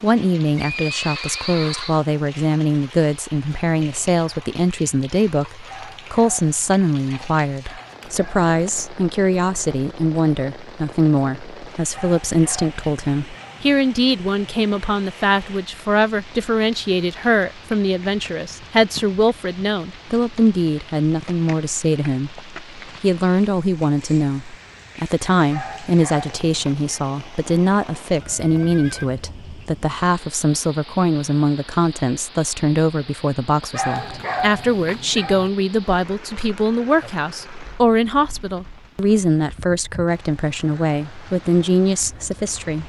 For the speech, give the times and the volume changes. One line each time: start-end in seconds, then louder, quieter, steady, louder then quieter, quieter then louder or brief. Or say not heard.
0.0-42.8 steady.